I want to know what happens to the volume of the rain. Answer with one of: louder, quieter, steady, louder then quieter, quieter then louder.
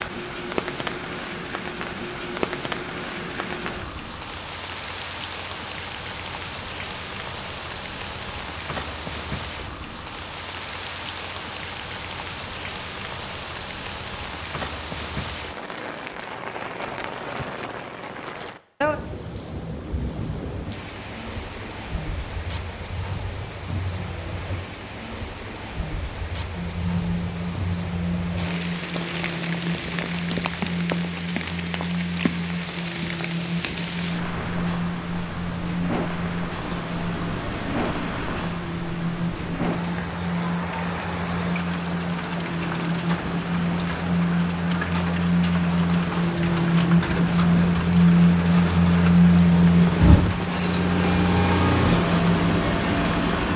steady.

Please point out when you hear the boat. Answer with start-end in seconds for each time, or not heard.
26.6-53.5.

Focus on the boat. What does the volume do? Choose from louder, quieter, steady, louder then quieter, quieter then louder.
louder.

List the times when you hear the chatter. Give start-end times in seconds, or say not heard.
not heard.